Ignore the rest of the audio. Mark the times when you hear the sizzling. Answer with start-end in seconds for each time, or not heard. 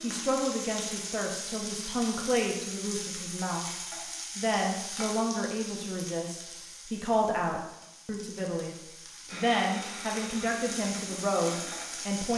0.0-12.3.